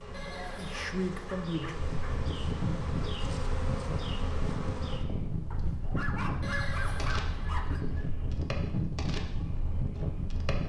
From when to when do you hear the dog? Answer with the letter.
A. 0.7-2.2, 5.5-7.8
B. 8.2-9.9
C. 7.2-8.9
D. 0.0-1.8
A.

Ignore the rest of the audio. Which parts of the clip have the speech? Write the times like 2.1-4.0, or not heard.
0.0-1.8.